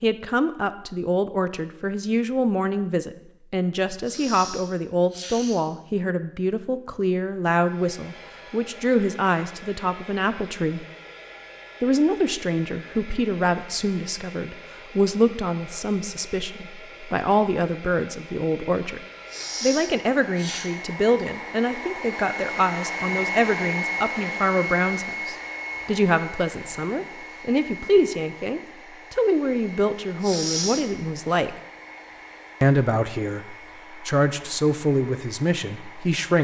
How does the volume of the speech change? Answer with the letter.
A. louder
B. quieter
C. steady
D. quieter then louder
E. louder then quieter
C.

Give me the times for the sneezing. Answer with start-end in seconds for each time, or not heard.
4.0-5.7, 19.2-20.7, 30.2-31.4.